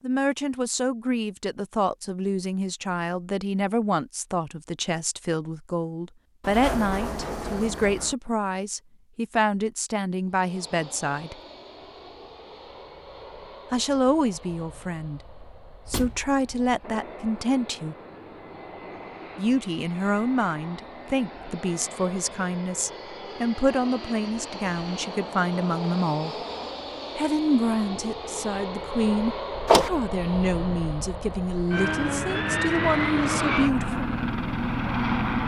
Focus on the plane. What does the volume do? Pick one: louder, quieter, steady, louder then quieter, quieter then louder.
louder.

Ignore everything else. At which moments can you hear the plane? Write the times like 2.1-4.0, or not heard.
10.3-35.4.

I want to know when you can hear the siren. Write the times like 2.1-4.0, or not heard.
not heard.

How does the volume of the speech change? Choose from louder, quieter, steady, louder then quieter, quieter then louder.
steady.